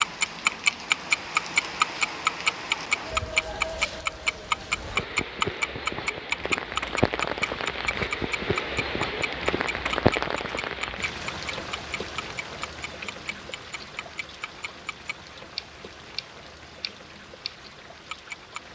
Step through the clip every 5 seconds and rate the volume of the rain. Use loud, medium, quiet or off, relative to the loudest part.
medium, loud, loud, quiet.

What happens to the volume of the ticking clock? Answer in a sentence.
The volume of the ticking clock goes down.